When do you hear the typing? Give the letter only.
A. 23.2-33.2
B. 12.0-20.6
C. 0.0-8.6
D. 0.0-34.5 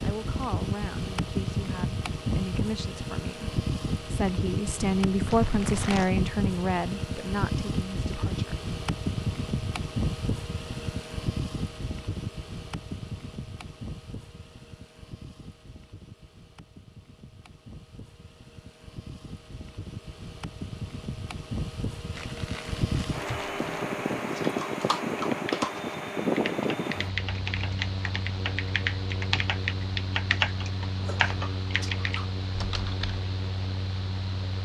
A.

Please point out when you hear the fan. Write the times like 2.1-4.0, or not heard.
0.0-34.5.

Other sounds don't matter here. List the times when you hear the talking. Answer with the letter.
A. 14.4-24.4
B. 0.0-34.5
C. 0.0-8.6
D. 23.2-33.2
C.